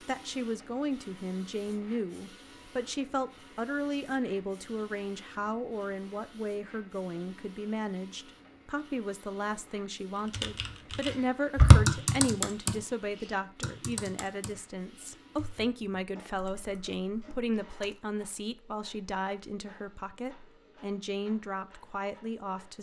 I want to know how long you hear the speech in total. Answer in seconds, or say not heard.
23 s.